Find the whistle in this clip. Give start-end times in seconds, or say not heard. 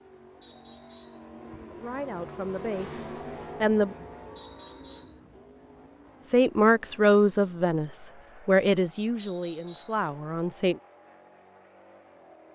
0.4-1.2, 4.3-5.2, 9.2-10.1.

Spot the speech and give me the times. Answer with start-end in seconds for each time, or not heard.
1.7-4.0, 6.2-10.8.